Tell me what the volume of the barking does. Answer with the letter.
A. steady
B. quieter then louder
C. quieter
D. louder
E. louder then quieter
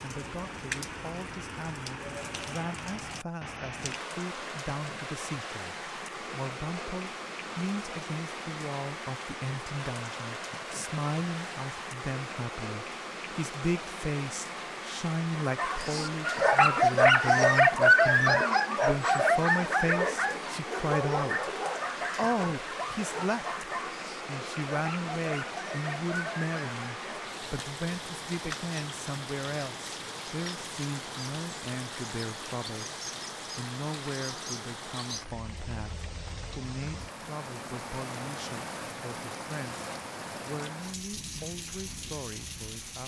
C.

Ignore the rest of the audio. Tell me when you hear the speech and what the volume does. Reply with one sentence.
You can hear the speech from 0.0 to 21.5 s, getting louder; and from 22.1 to 43.0 s, getting quieter.